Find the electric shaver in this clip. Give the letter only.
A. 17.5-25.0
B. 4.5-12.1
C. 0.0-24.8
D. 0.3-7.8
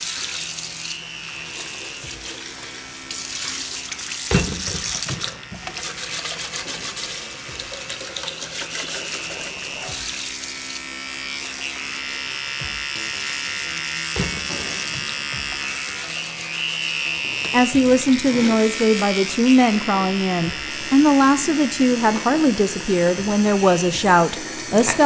C.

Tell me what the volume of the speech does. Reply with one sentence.
The volume of the speech stays about the same.